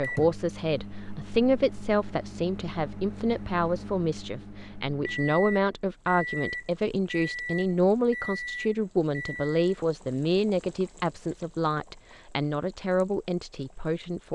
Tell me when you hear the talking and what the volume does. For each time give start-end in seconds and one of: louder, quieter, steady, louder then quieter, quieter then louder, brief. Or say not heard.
0.0-14.3 steady.